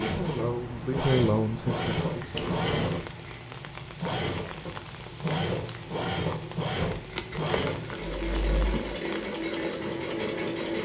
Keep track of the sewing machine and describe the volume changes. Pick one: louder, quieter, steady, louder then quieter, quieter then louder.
steady.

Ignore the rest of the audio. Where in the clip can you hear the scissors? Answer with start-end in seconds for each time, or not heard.
2.3-3.0, 7.0-8.2.